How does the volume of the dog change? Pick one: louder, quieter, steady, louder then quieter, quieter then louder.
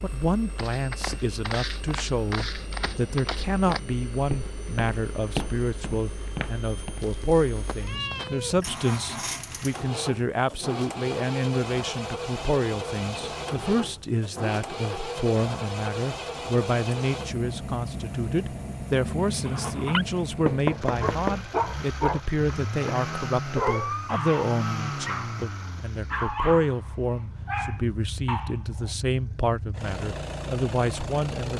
quieter.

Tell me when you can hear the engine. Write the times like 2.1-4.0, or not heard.
0.0-31.5.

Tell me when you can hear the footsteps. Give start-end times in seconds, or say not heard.
0.6-7.0.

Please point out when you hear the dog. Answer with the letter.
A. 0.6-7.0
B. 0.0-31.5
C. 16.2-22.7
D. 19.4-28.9
D.